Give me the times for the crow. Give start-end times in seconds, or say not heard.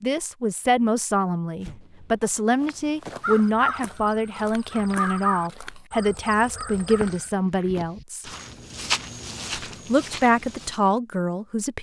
3.2-7.3.